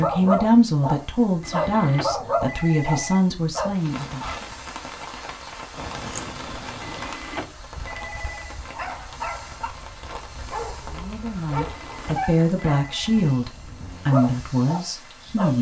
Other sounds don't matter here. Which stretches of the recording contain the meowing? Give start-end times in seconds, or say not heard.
5.8-7.2.